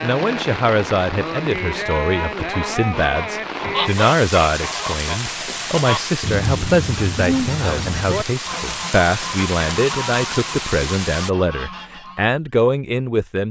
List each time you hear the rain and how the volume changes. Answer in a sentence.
You can hear the rain from 0.0 to 11.3 s, at a steady volume.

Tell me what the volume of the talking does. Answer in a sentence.
The loudness of the talking stays about the same.